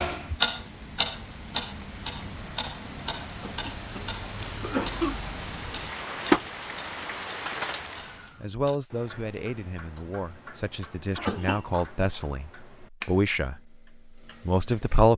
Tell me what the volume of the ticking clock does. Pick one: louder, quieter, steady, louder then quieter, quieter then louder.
quieter.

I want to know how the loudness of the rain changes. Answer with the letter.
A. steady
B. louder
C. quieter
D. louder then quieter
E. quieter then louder
D.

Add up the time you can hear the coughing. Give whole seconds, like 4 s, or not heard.
2 s.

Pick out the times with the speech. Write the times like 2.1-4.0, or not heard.
8.4-13.6, 14.4-15.1.